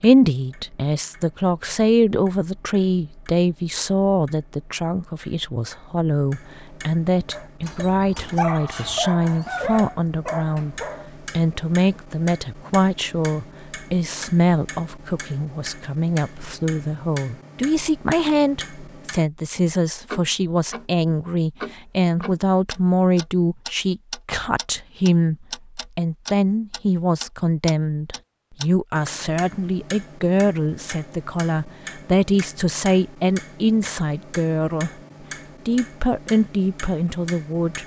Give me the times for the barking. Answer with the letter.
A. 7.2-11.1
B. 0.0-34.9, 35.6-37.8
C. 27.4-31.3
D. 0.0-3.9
A.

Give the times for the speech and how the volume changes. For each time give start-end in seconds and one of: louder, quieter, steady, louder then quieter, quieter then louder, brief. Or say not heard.
0.0-34.9 steady
35.6-37.8 brief.